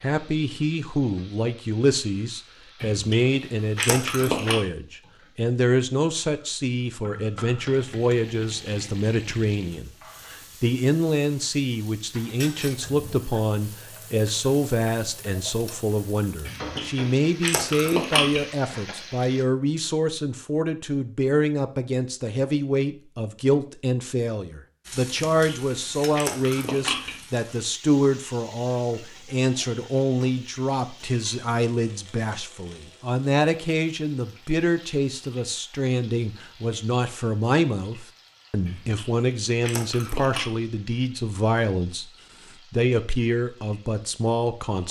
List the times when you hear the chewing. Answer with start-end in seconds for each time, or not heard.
2.8-4.5, 16.4-18.4, 25.1-27.1, 38.6-40.5.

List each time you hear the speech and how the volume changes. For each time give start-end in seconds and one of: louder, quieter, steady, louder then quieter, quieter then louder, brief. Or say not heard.
0.0-42.0 steady
42.7-44.8 brief.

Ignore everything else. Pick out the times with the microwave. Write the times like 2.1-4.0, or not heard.
not heard.